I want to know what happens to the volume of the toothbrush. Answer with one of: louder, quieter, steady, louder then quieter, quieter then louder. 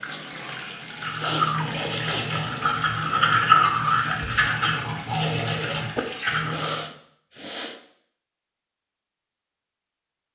louder then quieter.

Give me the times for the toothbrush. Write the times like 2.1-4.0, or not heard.
1.0-6.8.